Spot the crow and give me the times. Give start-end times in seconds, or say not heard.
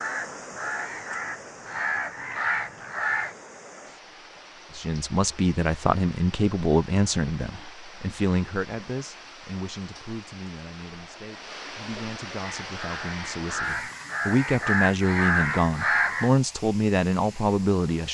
0.0-3.4, 12.3-16.3.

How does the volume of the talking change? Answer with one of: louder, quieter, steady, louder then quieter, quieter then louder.
quieter then louder.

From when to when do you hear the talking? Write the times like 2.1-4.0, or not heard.
4.8-18.0.